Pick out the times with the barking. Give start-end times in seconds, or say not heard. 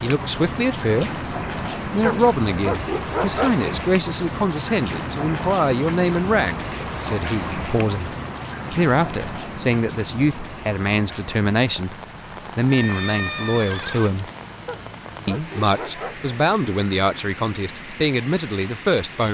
2.0-3.6, 14.7-16.3.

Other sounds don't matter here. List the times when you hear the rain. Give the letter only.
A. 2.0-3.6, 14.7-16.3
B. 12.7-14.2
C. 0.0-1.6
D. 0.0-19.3
D.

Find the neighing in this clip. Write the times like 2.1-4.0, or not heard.
12.7-14.2.